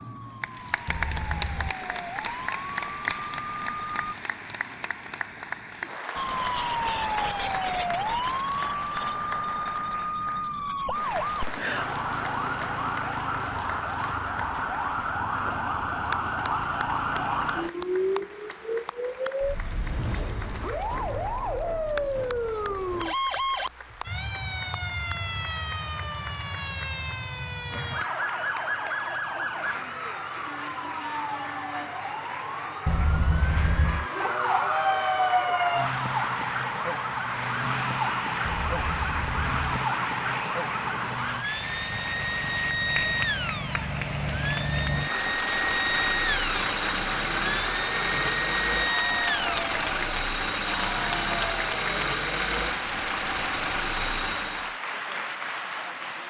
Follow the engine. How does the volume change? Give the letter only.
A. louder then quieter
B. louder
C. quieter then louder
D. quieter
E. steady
B.